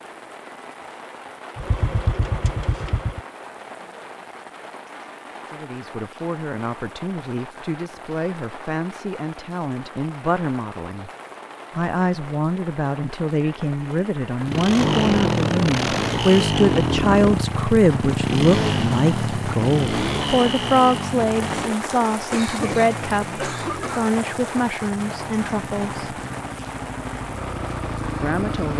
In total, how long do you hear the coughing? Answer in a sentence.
You can hear the coughing for 2 seconds altogether.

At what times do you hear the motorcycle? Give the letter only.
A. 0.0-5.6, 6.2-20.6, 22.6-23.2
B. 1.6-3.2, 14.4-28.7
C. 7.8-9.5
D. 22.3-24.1
B.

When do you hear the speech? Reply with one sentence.
The speech can be heard from 5.5 to 11.1 s, from 11.7 to 26.1 s and from 28.1 to 28.7 s.